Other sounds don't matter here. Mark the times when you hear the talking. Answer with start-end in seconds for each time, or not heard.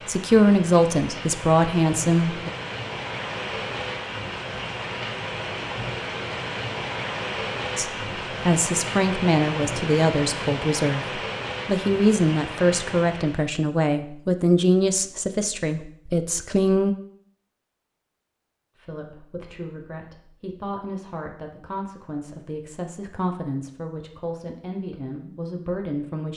0.1-2.5, 7.8-16.9, 18.8-26.3.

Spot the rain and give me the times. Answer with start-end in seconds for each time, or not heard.
0.0-13.5.